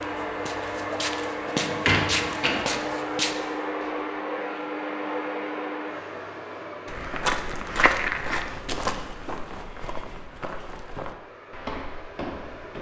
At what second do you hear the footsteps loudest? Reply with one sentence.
The volume of the footsteps peaks at 8 seconds.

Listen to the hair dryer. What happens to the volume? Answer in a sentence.
The loudness of the hair dryer goes down.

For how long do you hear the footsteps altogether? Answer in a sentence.
You can hear the footsteps for 10 seconds altogether.